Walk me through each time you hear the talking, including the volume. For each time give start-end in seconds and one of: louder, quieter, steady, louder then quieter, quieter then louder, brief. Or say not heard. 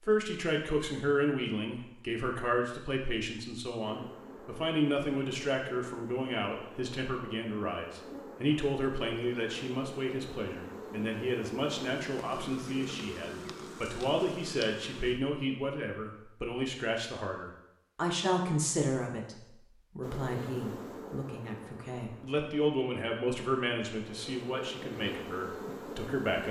0.0-26.4 steady.